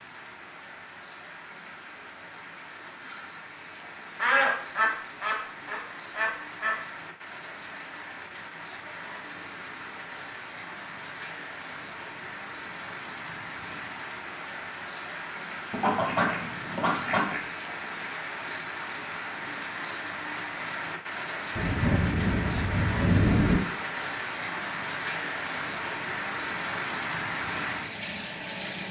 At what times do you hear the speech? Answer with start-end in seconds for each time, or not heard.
not heard.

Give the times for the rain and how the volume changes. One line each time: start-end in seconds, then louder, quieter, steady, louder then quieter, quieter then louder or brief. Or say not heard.
0.0-28.8 louder.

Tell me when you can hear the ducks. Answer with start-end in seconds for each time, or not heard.
4.2-6.8, 15.7-17.4, 21.6-23.6.